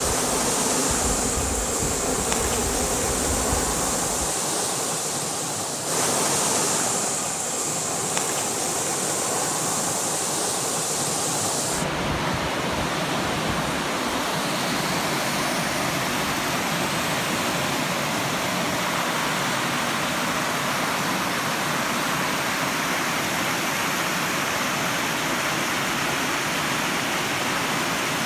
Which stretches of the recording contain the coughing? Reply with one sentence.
The coughing can't be heard in this clip.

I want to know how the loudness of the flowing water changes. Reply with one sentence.
The loudness of the flowing water stays about the same.